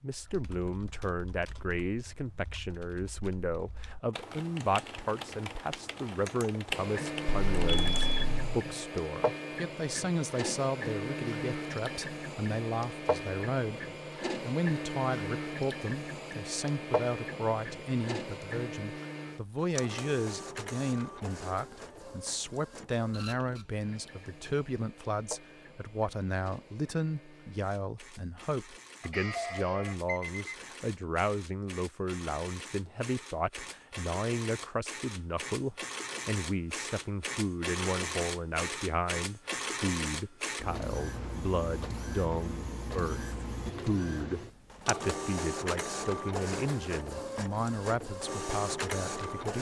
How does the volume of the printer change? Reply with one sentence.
The volume of the printer goes down, then up.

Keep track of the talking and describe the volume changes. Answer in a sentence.
The loudness of the talking stays about the same.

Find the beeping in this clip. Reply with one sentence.
You can hear the beeping from 7.2 to 8.6 s and from 29.0 to 30.4 s.